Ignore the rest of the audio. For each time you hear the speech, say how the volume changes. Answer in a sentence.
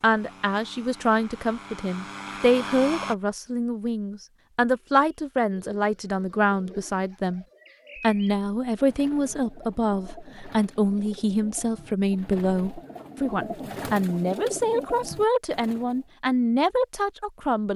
You can hear the speech from 0.0 to 17.7 s, at a steady volume.